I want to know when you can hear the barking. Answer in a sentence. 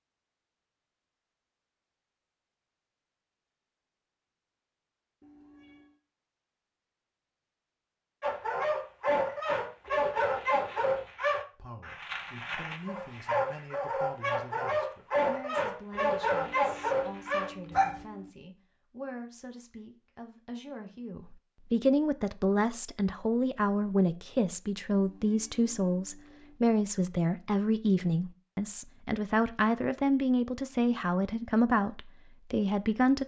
The barking can be heard from 8.2 to 18.1 s.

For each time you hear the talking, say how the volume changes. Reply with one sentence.
The talking can be heard from 11.6 to 33.2 s, getting louder.